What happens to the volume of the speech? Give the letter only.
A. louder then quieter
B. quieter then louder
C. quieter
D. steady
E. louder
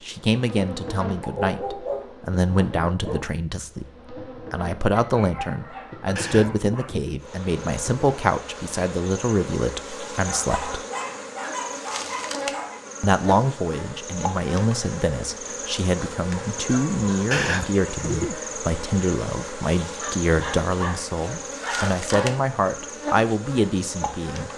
D.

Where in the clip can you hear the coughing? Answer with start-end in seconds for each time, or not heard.
6.2-8.1, 17.3-18.4.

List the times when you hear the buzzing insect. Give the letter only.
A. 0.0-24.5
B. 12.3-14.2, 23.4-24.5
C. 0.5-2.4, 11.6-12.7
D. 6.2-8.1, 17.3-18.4
A.